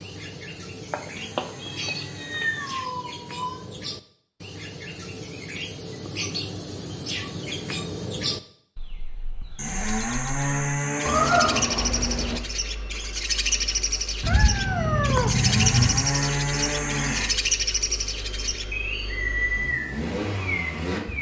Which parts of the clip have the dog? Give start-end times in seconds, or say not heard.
not heard.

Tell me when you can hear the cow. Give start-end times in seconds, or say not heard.
0.8-2.9, 9.6-11.4, 15.2-17.3.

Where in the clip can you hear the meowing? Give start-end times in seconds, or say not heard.
0.9-3.5, 11.1-12.4, 14.2-16.1.